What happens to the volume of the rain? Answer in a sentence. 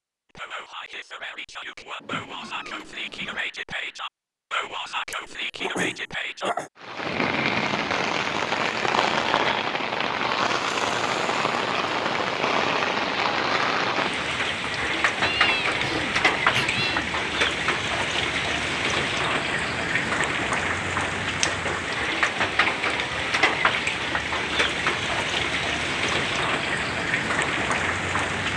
The loudness of the rain stays about the same.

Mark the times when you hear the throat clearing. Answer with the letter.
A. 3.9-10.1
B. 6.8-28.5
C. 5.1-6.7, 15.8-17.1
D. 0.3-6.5
C.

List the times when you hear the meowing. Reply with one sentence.
You can hear the meowing from 2.0 to 3.5 s and from 15.2 to 17.1 s.